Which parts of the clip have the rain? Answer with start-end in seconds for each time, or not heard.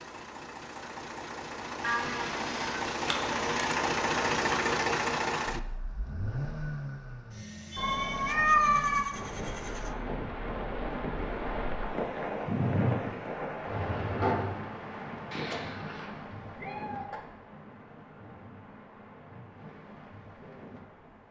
9.1-21.2.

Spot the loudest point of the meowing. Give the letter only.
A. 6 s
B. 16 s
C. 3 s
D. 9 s
D.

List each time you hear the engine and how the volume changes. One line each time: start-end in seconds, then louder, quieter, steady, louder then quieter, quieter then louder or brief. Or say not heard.
0.0-9.9 louder then quieter.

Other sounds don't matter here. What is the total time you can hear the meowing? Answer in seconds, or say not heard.
5 s.